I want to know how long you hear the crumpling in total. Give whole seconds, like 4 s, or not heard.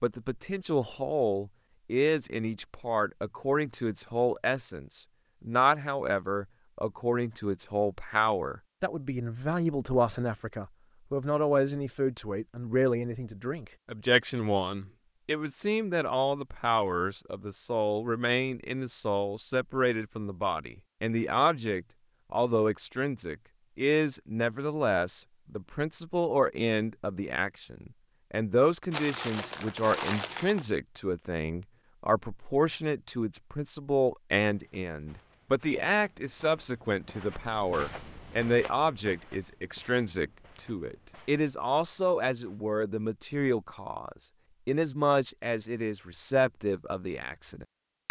2 s.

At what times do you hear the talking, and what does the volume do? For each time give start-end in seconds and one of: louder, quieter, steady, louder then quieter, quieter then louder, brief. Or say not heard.
0.0-48.0 steady.